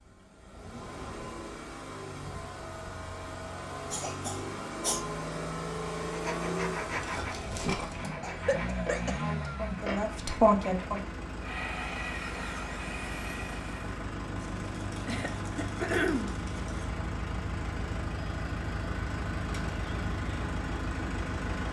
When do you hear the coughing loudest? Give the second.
16 s.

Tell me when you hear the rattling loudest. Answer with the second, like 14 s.
8 s.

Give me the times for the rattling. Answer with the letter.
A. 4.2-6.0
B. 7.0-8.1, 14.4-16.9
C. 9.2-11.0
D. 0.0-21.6
B.